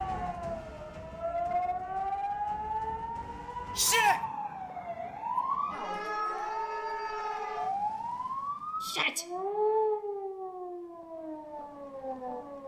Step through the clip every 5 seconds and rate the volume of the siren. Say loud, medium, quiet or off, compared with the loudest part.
loud, loud, medium.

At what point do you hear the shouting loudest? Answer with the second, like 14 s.
4 s.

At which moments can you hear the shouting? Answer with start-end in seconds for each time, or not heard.
3.8-4.2, 8.8-9.2.